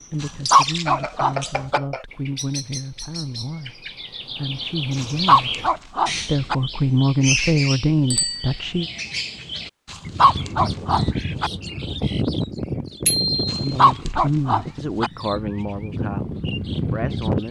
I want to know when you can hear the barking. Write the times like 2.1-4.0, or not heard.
0.2-1.8, 5.0-6.5, 9.9-11.5, 13.5-15.1.